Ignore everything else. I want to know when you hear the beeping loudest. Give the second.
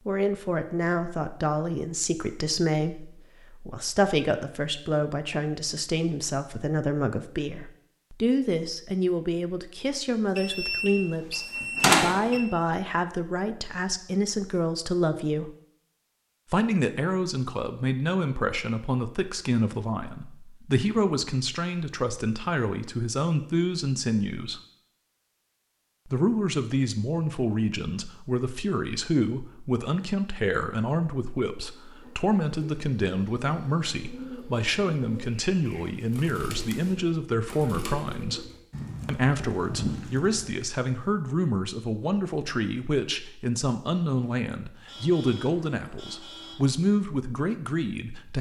12 s.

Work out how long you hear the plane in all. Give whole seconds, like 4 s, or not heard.
not heard.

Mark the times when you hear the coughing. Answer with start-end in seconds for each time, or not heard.
not heard.